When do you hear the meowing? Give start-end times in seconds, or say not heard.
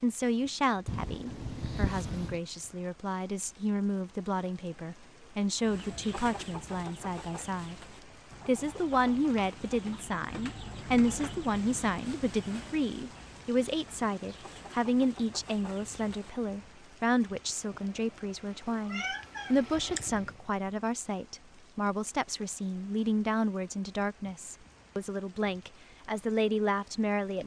0.8-2.4, 18.7-20.1.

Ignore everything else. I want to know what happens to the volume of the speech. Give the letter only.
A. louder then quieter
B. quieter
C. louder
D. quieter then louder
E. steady
E.